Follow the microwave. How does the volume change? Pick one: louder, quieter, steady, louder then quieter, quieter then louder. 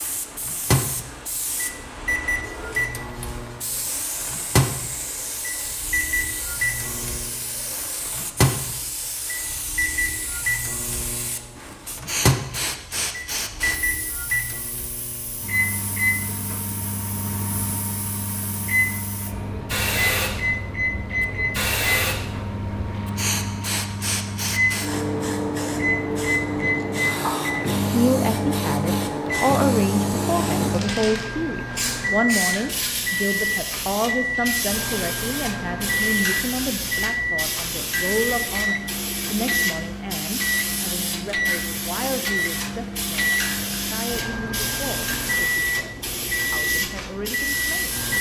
steady.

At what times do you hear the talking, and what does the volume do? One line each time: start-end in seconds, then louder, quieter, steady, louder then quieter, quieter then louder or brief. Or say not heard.
27.9-48.0 quieter.